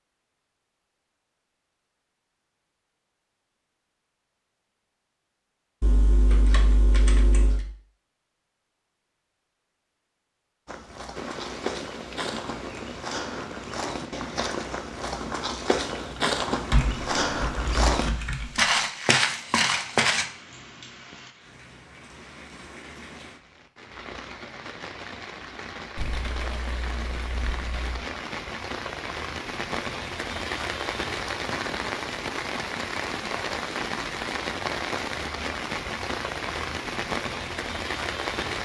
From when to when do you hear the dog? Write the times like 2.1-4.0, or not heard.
not heard.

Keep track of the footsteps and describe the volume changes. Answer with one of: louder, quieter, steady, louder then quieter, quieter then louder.
louder.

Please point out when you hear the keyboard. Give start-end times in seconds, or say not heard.
5.8-7.7, 16.7-18.7, 25.9-28.0.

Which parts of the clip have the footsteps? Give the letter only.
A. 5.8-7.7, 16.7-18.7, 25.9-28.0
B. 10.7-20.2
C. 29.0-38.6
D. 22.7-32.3
B.